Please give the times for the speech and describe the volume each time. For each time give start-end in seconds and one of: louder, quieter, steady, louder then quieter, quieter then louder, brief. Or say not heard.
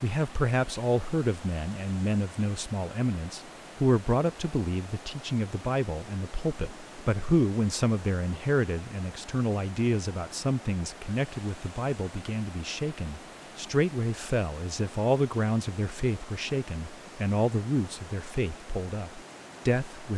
0.0-20.1 steady.